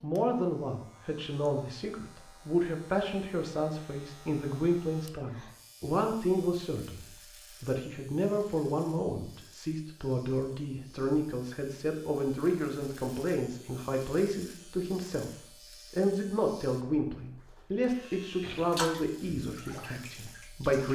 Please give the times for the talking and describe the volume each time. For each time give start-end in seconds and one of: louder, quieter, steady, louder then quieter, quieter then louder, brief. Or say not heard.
0.0-20.9 steady.